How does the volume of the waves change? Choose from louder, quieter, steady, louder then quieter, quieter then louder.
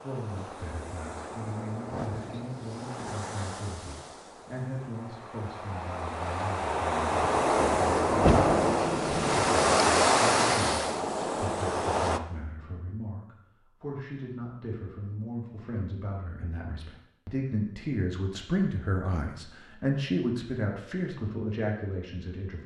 louder.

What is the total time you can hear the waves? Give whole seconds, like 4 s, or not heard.
12 s.